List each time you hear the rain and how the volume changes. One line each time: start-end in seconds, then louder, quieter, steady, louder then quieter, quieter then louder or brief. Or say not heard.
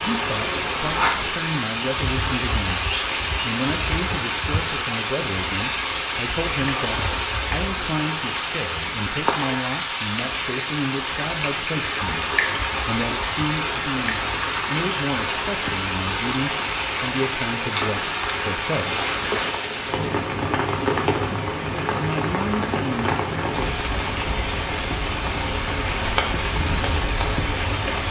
0.0-28.0 steady.